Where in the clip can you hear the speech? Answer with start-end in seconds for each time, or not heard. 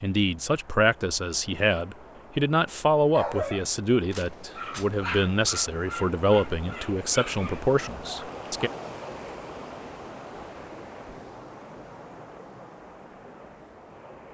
0.0-8.7.